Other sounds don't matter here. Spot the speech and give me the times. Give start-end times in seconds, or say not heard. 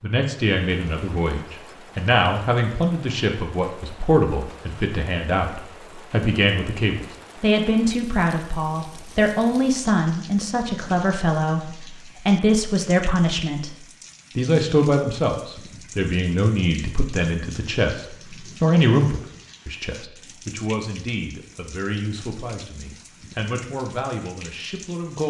0.0-25.2.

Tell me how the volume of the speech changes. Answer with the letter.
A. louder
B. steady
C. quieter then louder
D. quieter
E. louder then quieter
D.